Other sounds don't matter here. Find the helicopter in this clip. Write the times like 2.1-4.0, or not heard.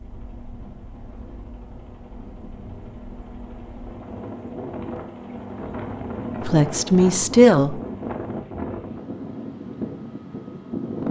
0.0-8.4.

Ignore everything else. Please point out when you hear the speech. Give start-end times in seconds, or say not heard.
6.4-7.8.